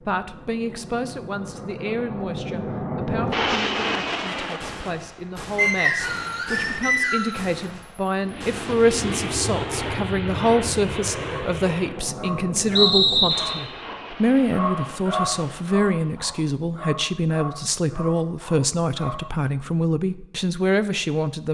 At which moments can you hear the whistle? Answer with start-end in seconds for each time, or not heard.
5.5-7.4, 12.8-13.6.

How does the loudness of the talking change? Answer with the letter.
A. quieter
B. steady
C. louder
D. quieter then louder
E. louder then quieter
C.